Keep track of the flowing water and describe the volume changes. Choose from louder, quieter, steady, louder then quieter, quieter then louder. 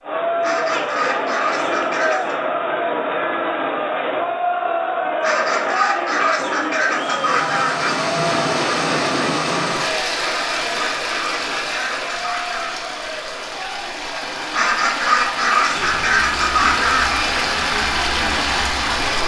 quieter then louder.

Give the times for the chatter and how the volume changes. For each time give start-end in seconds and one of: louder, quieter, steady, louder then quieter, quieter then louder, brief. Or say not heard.
0.0-19.2 quieter.